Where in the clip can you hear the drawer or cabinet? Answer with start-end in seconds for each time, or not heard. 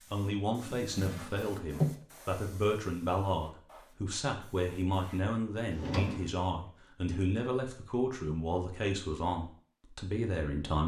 0.7-1.9, 5.7-6.3.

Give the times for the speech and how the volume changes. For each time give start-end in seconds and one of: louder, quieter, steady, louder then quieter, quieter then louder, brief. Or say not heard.
0.1-10.8 steady.